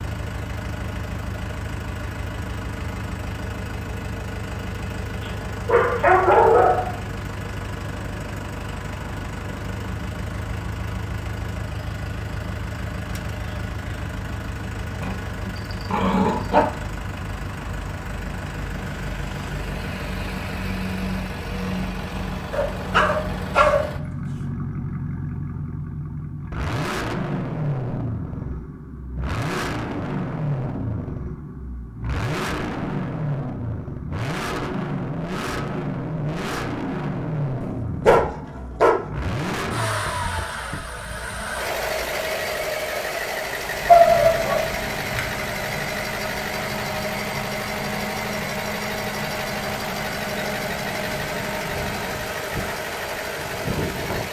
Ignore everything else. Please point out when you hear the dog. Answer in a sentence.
You can hear the dog from 5.7 to 7.0 s, from 15.0 to 16.6 s, from 22.5 to 24.4 s, from 38.0 to 39.0 s and from 43.9 to 45.2 s.